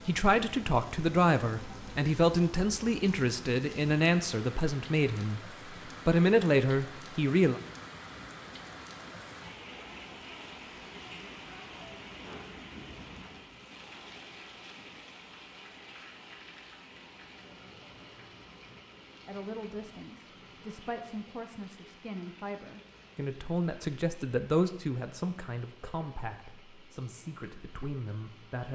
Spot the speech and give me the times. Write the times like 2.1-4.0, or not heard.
0.1-7.6, 19.2-28.7.